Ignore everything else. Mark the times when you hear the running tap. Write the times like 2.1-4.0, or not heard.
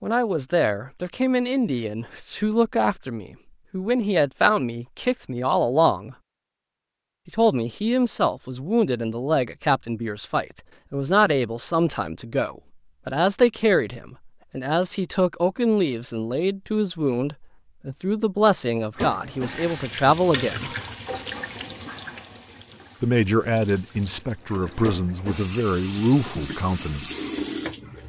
18.9-28.0.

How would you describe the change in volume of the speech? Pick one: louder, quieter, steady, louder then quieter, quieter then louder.
steady.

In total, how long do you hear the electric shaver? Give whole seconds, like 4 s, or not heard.
not heard.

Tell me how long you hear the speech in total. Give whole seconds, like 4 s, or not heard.
24 s.